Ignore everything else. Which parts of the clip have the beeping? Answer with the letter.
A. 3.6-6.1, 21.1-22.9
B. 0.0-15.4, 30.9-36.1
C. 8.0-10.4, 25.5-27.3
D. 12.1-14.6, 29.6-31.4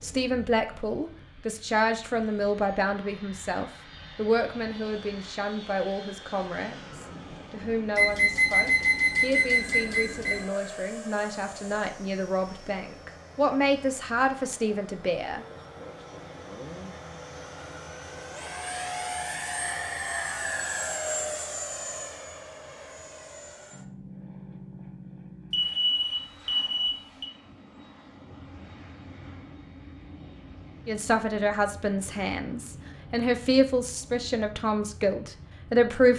C.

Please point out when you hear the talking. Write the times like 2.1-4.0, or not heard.
0.0-15.4, 30.9-36.1.